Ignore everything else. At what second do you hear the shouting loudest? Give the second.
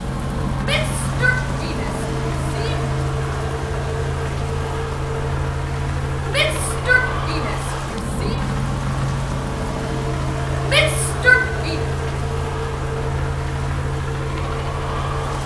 11 s.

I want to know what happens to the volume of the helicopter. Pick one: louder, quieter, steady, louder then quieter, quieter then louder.
steady.